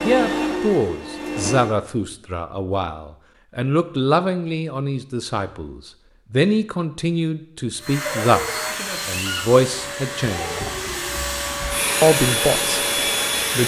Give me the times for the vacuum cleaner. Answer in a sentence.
You can hear the vacuum cleaner from 0.0 to 1.8 s and from 7.8 to 13.6 s.